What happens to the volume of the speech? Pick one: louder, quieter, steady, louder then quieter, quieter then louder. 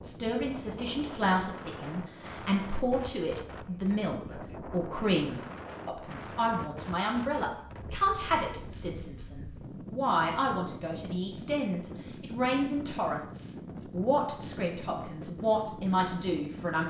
steady.